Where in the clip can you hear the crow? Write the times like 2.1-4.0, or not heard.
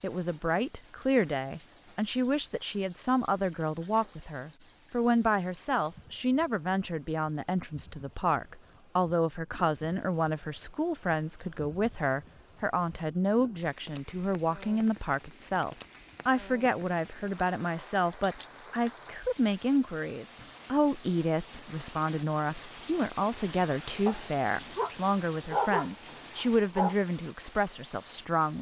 not heard.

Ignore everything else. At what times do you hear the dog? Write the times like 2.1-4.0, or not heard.
24.1-26.9.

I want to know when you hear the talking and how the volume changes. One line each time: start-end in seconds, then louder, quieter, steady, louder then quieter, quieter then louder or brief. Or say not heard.
0.0-28.5 steady.